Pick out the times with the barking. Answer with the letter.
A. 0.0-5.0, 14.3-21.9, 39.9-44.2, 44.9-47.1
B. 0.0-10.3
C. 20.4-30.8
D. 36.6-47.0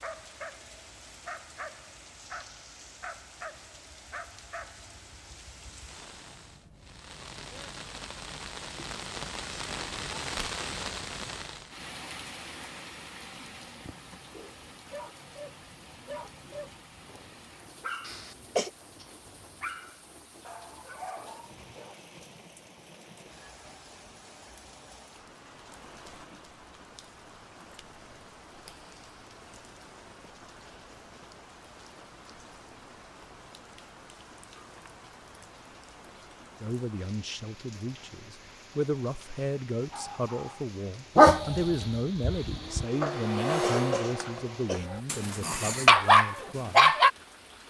A.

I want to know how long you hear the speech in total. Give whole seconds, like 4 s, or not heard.
10 s.